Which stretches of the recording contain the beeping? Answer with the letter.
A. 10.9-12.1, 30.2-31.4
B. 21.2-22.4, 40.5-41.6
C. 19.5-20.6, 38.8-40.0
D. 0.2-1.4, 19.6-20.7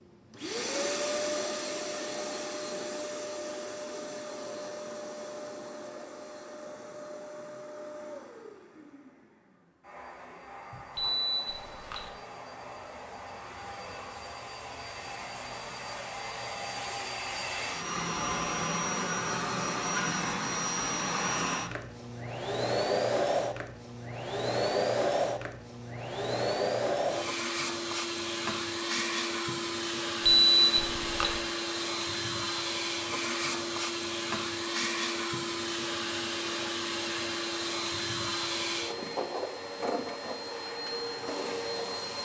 A.